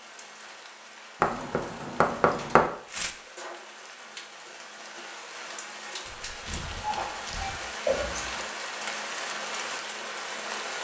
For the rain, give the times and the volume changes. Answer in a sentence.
You can hear the rain from 0.0 to 10.8 s, getting louder.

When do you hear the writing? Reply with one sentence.
The writing can be heard from 1.2 to 2.7 s and from 6.4 to 8.4 s.